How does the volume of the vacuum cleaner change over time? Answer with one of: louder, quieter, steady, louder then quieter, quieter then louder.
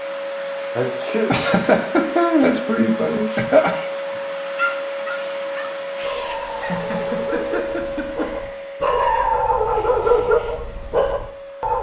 quieter.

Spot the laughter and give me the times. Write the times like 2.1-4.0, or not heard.
1.2-3.8, 6.5-8.4.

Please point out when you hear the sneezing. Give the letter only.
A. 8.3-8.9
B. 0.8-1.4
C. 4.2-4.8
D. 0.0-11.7
B.